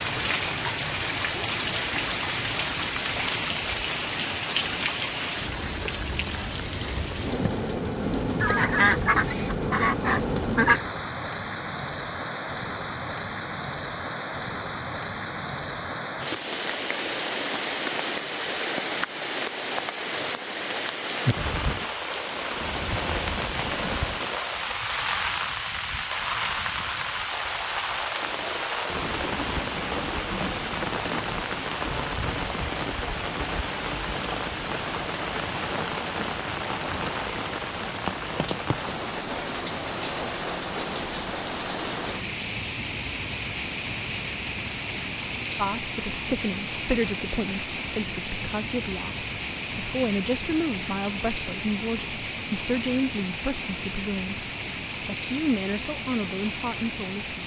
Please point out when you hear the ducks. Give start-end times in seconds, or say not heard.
8.4-10.9.